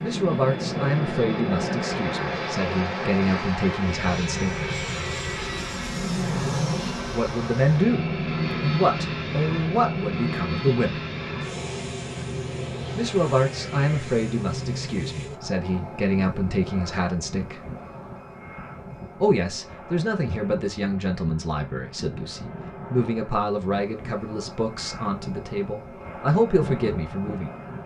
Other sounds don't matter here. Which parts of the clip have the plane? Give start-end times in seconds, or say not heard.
0.0-27.8.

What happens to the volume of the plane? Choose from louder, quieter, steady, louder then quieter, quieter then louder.
quieter.